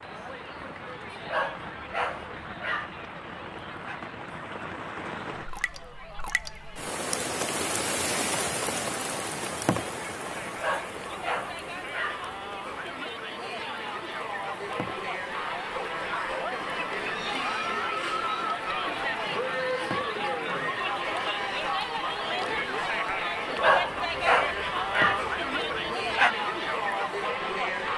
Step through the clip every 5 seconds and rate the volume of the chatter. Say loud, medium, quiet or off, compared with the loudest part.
quiet, quiet, medium, loud, loud, loud.